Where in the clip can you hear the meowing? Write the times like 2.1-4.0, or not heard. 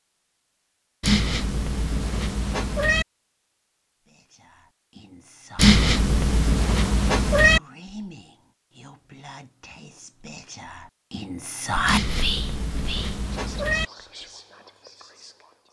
1.0-3.0, 5.5-7.6, 11.8-13.8.